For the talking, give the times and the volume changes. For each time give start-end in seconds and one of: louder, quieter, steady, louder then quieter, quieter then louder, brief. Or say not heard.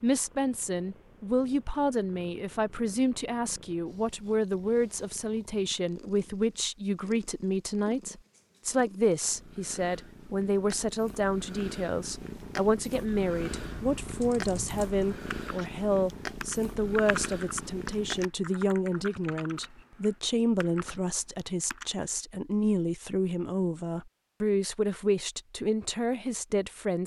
0.0-27.0 steady.